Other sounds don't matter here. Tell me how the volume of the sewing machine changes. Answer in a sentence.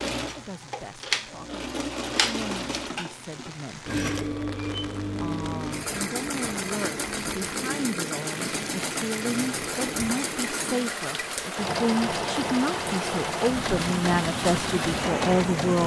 The loudness of the sewing machine stays about the same.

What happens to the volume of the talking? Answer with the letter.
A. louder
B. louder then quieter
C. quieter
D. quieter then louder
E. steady
A.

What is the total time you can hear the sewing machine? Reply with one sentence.
You can hear the sewing machine for 16 seconds altogether.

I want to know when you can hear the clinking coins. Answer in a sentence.
The clinking coins can't be heard in this clip.